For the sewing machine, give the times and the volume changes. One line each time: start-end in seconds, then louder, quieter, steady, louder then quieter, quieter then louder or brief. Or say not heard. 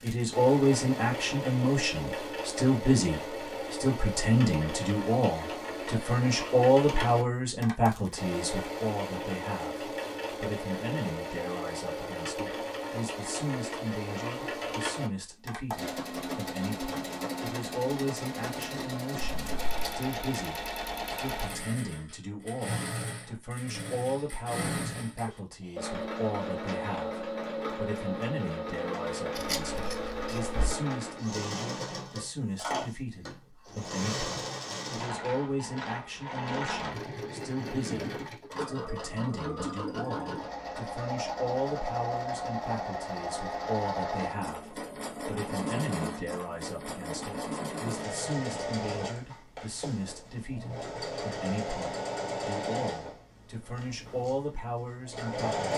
0.0-55.7 steady.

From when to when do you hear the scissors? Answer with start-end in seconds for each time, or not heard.
19.2-19.9, 29.4-30.8.